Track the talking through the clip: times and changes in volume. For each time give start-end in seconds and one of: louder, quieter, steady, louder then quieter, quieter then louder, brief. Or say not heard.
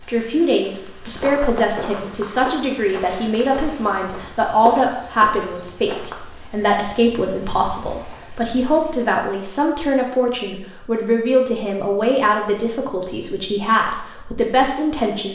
0.0-15.2 steady.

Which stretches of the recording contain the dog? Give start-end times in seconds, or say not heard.
not heard.